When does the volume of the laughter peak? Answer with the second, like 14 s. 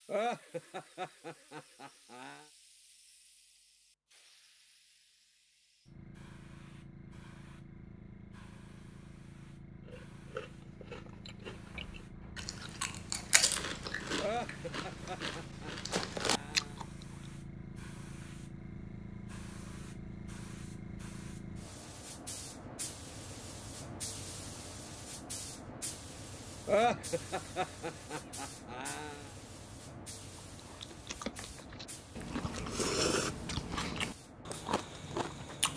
27 s.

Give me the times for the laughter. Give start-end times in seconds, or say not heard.
0.1-2.5, 14.2-16.8, 26.6-29.2.